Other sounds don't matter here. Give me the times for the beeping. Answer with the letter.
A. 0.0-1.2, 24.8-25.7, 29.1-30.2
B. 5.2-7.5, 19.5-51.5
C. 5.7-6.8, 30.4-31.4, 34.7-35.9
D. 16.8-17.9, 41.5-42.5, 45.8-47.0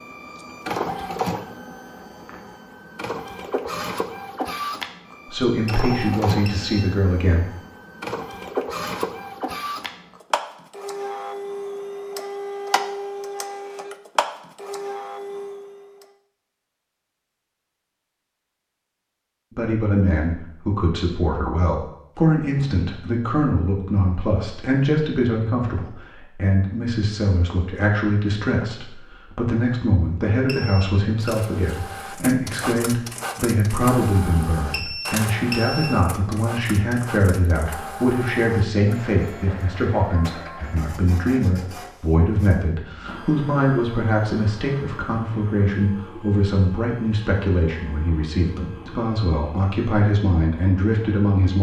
C.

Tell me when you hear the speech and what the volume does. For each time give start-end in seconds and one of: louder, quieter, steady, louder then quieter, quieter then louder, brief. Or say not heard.
5.2-7.5 brief
19.5-51.5 steady.